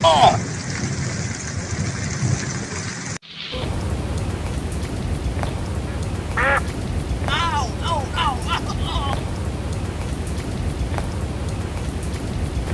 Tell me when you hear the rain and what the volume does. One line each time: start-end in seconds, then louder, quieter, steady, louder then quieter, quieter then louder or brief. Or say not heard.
0.0-12.7 steady.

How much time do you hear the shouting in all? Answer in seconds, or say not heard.
2 s.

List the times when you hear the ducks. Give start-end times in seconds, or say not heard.
5.8-6.7.